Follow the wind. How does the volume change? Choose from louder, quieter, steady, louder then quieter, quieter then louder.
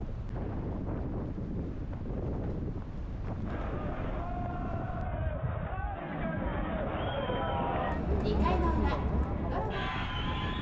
steady.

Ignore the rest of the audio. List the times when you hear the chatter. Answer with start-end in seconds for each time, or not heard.
3.4-10.5.